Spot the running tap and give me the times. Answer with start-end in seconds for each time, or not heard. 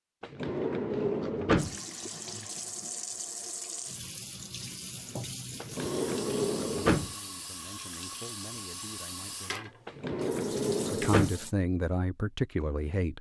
1.6-11.6.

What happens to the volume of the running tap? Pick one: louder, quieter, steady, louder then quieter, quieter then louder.
steady.